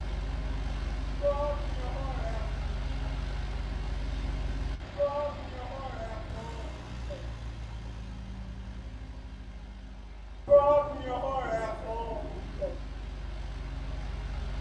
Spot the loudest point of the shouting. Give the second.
11 s.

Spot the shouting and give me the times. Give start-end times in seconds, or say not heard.
1.2-2.6, 5.0-7.3, 10.4-12.8.